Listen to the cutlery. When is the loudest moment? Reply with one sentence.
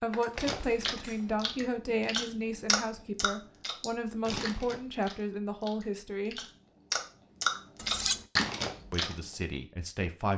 The loudest moment of the cutlery is at 8 seconds.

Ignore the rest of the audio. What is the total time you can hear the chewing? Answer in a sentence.
You can hear the chewing for 9 seconds altogether.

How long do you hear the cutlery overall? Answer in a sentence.
The cutlery can be heard for 2 seconds in total.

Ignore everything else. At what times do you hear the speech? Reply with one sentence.
The speech can be heard from 0.0 to 6.4 s and from 8.9 to 10.3 s.